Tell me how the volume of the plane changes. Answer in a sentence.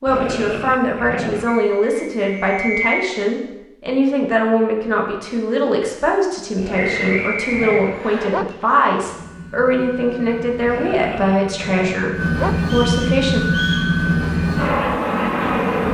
The loudness of the plane goes up.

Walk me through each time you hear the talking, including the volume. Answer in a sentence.
You can hear the talking from 0.0 to 13.4 s, at a steady volume.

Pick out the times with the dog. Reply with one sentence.
You can hear the dog from 0.1 to 1.5 s, from 6.5 to 8.6 s and from 10.7 to 12.7 s.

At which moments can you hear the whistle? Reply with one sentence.
The whistle can be heard from 1.4 to 3.1 s, from 6.8 to 8.3 s and from 12.7 to 13.9 s.